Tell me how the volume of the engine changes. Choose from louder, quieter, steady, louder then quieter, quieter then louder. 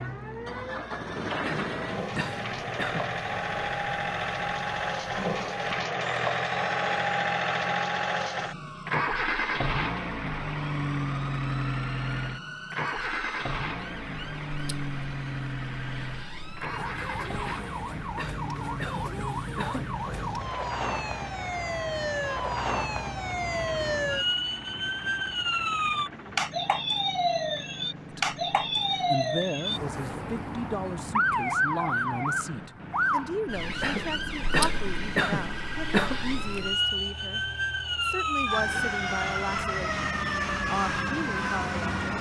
quieter.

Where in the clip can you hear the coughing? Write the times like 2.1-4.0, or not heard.
1.4-3.1, 17.4-19.9, 33.8-36.2.